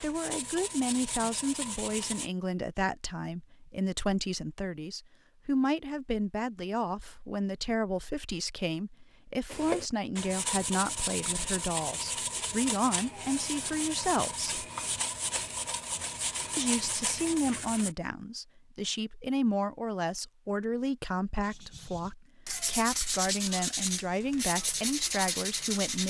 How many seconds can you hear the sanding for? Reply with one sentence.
You can hear the sanding for 15 seconds altogether.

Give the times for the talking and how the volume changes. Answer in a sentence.
You can hear the talking from 0.0 to 14.5 s, at a steady volume; and from 16.6 to 26.0 s, at a steady volume.